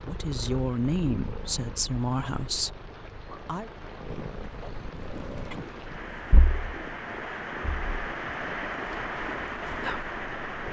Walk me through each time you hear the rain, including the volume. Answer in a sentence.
The rain can be heard from 0.0 to 10.6 s, getting louder.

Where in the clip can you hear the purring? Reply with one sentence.
You can hear the purring from 0.0 to 10.6 s.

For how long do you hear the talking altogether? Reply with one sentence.
You can hear the talking for 4 seconds altogether.